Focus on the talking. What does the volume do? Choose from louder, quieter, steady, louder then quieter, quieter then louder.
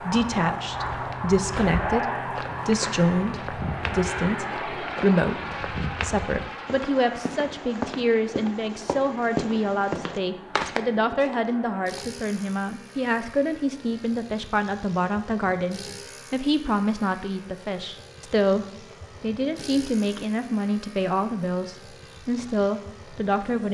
steady.